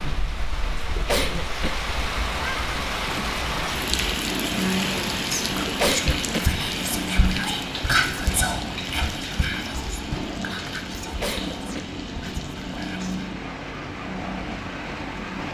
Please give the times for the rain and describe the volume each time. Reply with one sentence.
The rain can be heard from 0.0 to 15.4 s, getting quieter.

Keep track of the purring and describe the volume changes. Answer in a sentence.
The loudness of the purring stays about the same.